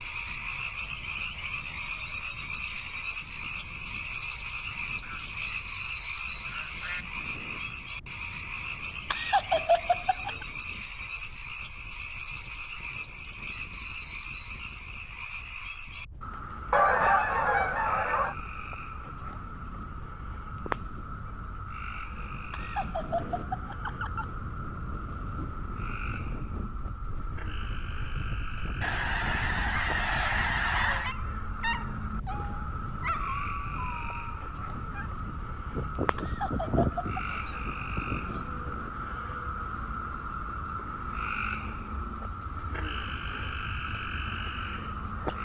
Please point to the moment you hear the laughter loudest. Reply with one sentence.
The loudest moment of the laughter is at 10 seconds.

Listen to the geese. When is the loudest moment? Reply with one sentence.
The loudest moment of the geese is at 17 seconds.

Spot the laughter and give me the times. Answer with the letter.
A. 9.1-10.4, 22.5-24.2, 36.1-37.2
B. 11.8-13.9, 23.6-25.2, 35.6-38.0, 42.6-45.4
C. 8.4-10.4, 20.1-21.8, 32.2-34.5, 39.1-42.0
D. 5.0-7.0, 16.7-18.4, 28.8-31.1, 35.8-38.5
A.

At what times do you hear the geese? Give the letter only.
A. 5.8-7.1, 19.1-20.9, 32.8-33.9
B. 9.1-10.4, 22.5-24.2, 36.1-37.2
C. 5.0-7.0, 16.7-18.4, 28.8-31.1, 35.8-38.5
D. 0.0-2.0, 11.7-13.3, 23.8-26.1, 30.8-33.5
C.